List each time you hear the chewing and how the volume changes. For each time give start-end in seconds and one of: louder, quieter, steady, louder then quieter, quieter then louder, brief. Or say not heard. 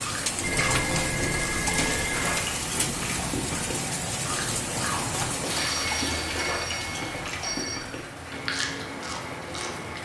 0.0-9.9 steady.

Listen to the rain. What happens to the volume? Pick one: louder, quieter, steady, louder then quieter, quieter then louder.
quieter.